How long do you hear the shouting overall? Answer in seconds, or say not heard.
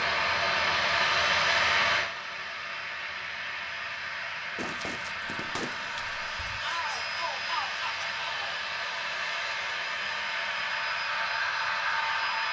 2 s.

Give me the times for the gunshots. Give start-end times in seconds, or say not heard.
4.5-6.6.